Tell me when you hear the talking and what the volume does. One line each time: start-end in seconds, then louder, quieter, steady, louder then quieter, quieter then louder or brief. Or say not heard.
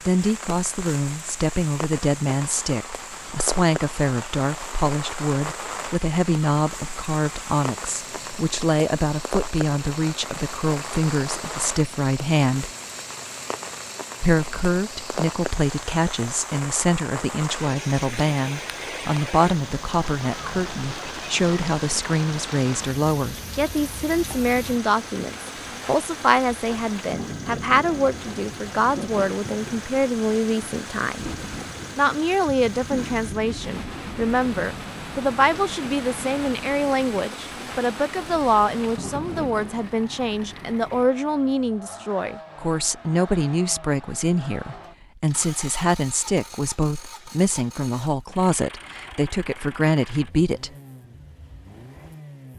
0.1-12.7 steady
14.2-31.2 steady
31.9-50.7 steady.